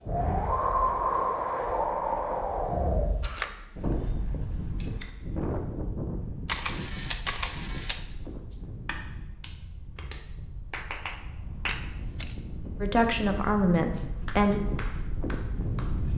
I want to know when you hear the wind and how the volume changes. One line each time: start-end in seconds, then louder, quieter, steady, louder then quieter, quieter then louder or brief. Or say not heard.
0.0-16.1 quieter then louder.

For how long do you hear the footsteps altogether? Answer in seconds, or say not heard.
not heard.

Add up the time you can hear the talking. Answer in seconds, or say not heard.
2 s.